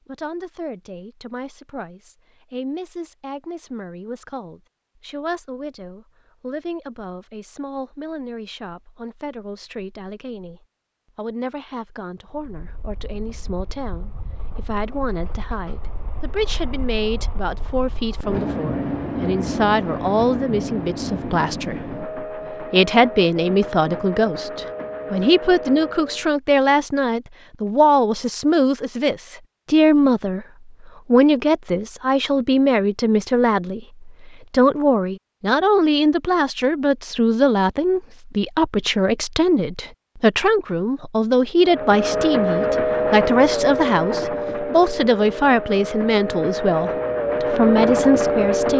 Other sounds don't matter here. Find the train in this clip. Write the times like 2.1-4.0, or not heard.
12.2-26.4, 41.6-48.7.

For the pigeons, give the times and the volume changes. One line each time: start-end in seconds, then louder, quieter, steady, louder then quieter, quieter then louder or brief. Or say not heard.
not heard.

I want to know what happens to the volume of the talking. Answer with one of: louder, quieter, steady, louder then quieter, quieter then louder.
louder.